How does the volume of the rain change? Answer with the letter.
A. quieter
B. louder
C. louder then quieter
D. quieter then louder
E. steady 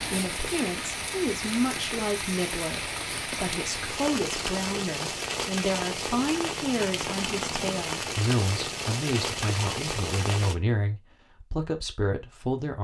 E.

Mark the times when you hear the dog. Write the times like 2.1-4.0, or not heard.
not heard.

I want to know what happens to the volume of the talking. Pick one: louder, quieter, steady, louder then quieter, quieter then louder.
steady.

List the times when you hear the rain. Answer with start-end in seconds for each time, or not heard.
0.0-10.6.